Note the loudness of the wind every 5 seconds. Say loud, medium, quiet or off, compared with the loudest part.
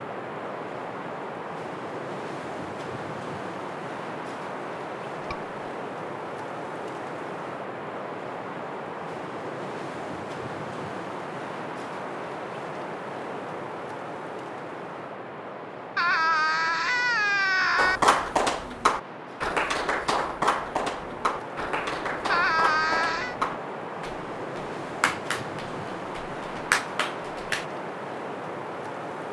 loud, loud, loud, medium, loud, loud.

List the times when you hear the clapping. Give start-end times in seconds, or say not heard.
17.8-27.6.